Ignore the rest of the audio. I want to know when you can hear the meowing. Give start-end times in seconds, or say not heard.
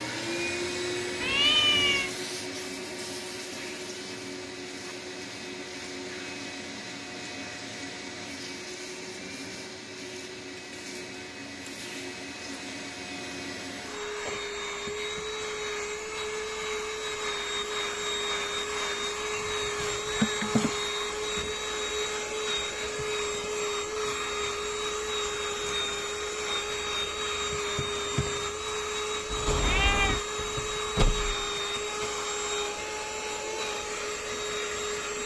1.2-2.1, 19.3-20.7, 29.3-30.2.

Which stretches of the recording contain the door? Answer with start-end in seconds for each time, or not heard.
30.4-31.5.